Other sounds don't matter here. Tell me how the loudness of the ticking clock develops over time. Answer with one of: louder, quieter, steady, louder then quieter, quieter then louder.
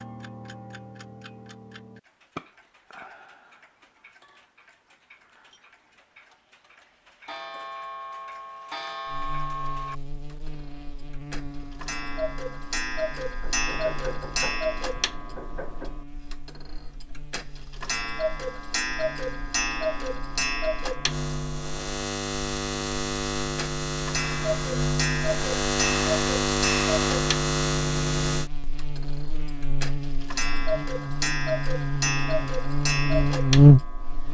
louder.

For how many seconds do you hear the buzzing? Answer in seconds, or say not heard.
25 s.